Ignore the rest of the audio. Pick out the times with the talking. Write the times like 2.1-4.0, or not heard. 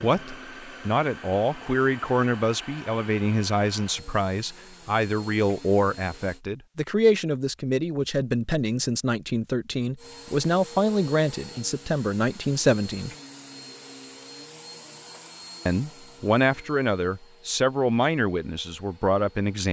0.0-13.1, 15.7-19.6.